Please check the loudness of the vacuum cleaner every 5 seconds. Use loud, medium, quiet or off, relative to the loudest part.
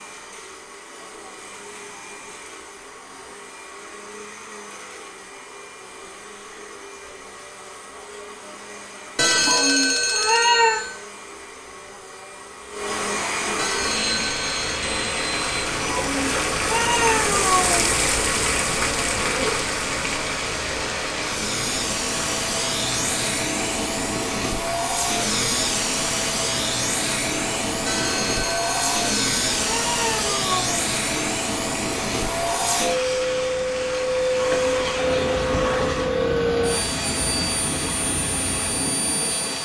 quiet, quiet, medium, medium, loud, loud, loud, loud.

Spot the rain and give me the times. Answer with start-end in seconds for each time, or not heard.
13.8-39.6.